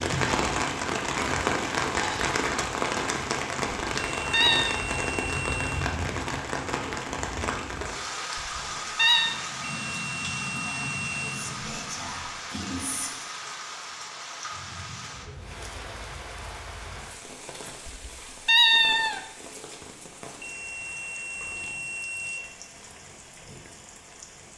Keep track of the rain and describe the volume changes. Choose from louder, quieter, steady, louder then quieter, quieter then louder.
quieter.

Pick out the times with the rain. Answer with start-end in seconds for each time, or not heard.
0.0-24.5.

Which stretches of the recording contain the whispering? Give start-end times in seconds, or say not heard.
10.4-13.1.